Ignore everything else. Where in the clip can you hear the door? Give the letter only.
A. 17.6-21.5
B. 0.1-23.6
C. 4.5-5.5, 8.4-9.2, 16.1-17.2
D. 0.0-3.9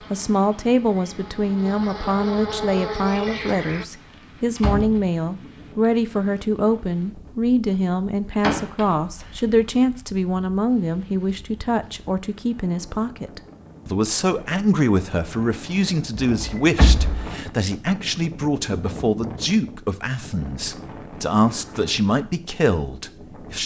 C.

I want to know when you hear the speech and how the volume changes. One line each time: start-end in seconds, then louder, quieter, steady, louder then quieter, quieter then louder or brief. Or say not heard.
0.1-23.6 steady.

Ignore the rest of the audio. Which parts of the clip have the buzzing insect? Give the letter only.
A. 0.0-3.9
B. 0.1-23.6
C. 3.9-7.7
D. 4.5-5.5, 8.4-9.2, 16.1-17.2
A.